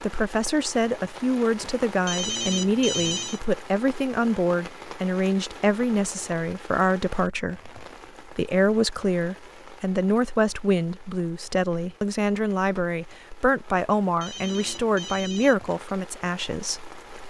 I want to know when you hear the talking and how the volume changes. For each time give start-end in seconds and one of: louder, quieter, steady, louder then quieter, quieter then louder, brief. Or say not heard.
0.0-16.9 steady.